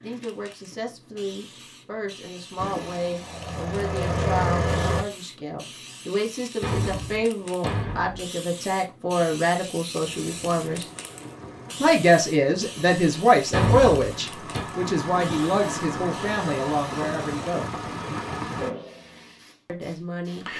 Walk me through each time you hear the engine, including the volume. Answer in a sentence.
You can hear the engine briefly from 2.5 to 5.0 s; and from 10.0 to 18.7 s, getting louder.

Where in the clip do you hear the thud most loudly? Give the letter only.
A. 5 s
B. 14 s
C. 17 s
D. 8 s
B.